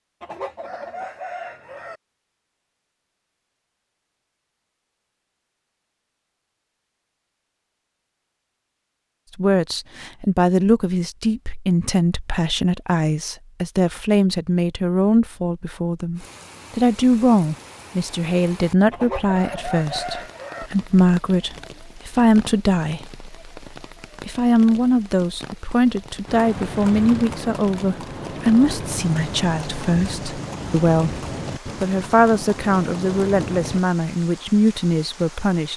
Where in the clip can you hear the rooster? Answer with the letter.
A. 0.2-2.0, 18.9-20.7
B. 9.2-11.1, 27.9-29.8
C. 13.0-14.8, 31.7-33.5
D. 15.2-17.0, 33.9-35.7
A.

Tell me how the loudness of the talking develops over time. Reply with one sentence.
The volume of the talking stays about the same.